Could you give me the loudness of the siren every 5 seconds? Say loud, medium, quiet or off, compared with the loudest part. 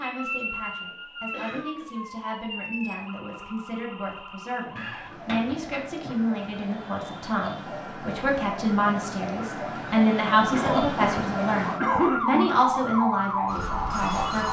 medium, medium, loud.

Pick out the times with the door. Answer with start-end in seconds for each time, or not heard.
4.8-5.6.